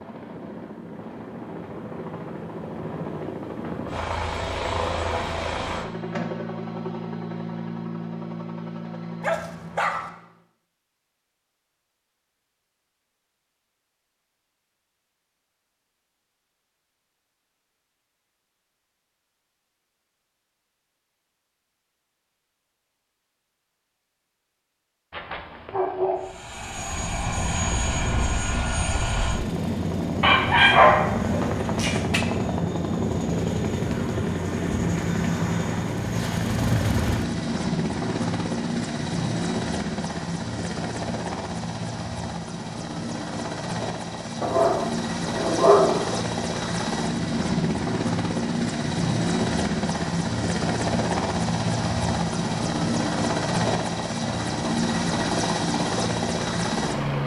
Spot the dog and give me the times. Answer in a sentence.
You can hear the dog from 9.2 to 10.1 s, from 25.1 to 26.3 s, from 30.2 to 32.2 s and from 44.4 to 46.0 s.